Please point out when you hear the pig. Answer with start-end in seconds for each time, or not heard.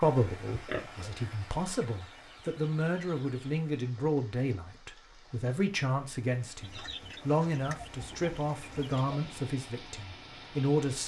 0.5-1.6.